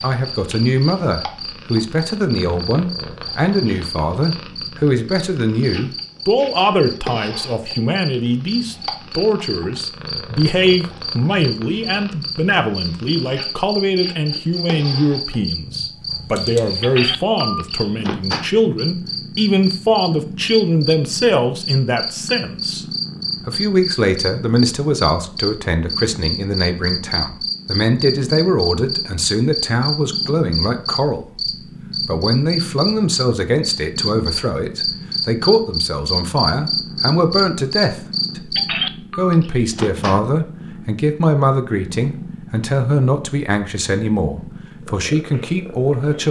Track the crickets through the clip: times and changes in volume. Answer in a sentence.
The crickets can be heard from 0.0 to 38.6 s, getting louder.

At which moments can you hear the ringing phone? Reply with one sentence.
The ringing phone can be heard from 16.8 to 18.5 s and from 38.5 to 40.2 s.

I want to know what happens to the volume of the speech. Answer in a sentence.
The loudness of the speech stays about the same.